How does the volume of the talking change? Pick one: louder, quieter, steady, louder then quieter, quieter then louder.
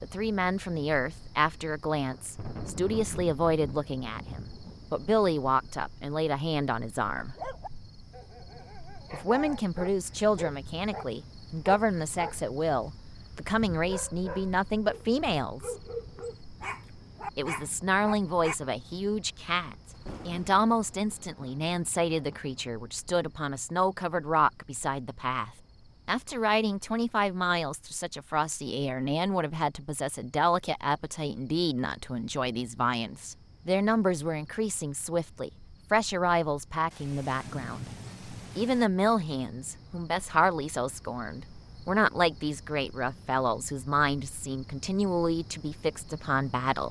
steady.